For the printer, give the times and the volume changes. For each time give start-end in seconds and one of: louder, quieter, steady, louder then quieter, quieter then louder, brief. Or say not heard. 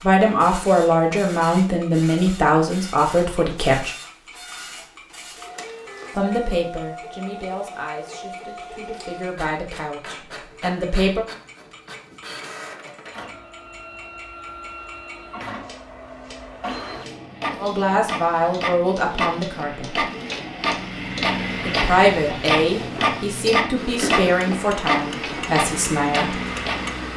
0.0-27.1 louder.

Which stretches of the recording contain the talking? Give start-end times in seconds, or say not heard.
0.0-4.0, 6.2-11.2, 17.6-20.1, 21.6-26.4.